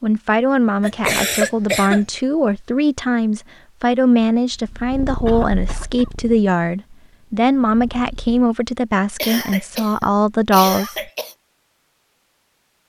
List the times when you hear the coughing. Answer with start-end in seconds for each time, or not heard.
0.8-2.0, 5.2-6.1, 9.2-11.3.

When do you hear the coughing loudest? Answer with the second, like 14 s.
1 s.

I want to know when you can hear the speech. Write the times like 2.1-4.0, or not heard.
0.0-10.9.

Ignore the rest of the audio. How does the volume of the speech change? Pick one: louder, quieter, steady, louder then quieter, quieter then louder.
steady.